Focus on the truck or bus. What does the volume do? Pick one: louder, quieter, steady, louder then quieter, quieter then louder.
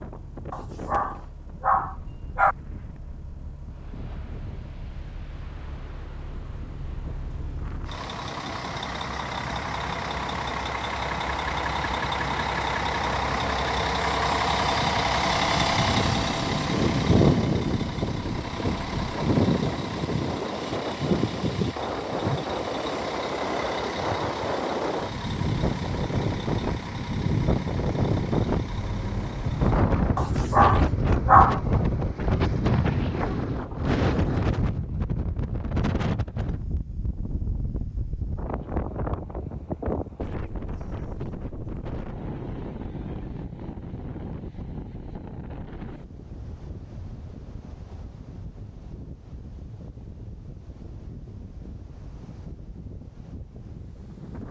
louder then quieter.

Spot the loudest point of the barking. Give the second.
31 s.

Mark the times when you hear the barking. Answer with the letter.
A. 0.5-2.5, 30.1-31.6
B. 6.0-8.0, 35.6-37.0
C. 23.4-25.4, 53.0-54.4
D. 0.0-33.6
A.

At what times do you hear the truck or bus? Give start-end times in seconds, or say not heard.
0.0-33.6.